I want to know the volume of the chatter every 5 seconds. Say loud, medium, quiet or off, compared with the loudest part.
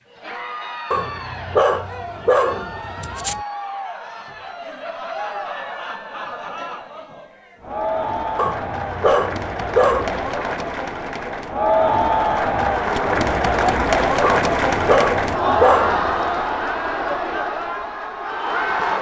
quiet, medium, loud, loud.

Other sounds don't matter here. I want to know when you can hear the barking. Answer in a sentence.
You can hear the barking from 0.9 to 3.4 s, from 8.3 to 10.3 s and from 14.2 to 16.2 s.